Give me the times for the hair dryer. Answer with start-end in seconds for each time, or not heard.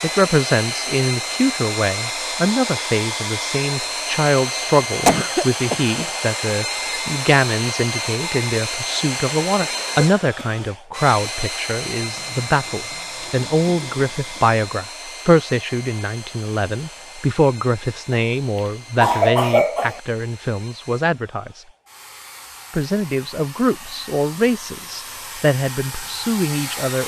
0.0-27.0.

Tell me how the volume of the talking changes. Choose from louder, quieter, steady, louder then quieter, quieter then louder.
steady.